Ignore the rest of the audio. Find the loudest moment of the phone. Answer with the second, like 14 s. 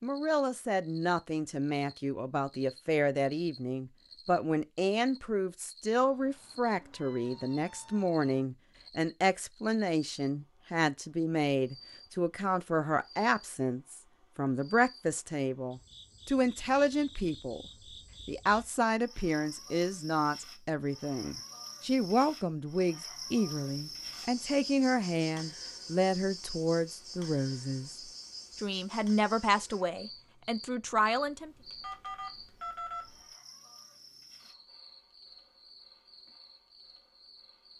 33 s.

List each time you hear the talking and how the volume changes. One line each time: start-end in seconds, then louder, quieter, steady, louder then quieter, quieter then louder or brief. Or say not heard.
0.0-17.6 steady
18.2-31.5 steady.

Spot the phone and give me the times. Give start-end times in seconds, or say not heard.
31.2-33.4.